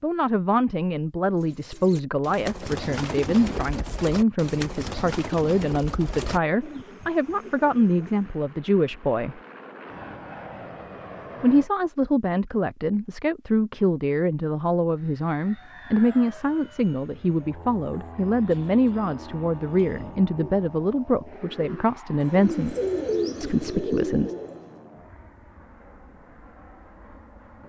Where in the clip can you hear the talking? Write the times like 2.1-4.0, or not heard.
0.0-9.4, 11.4-22.8, 23.4-24.4.